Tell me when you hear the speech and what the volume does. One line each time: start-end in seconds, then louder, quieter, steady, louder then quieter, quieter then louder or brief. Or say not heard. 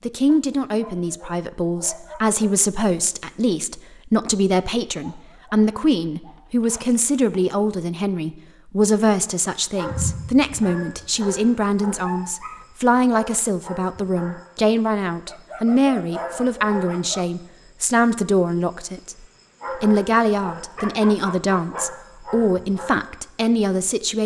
0.0-24.2 steady.